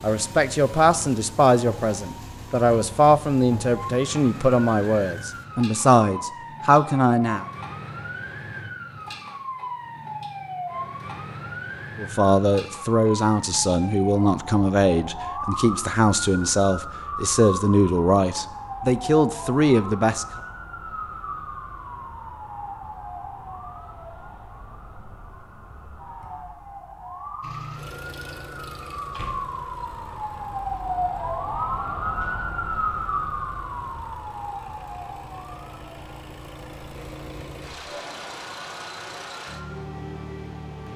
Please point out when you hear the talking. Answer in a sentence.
The talking can be heard from 0.0 to 7.5 s and from 11.9 to 20.2 s.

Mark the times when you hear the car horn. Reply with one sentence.
You can't hear the car horn here.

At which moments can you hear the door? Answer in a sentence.
You can hear the door from 29.1 to 29.6 s.